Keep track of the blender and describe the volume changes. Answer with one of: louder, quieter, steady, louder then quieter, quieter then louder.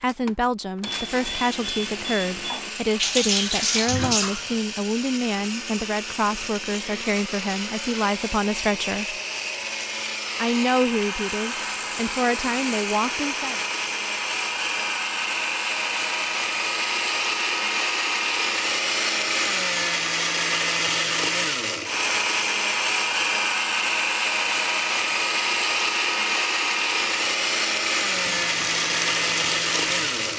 louder.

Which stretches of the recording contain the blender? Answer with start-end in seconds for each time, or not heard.
0.0-30.3.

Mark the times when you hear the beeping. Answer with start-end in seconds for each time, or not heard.
0.8-2.7.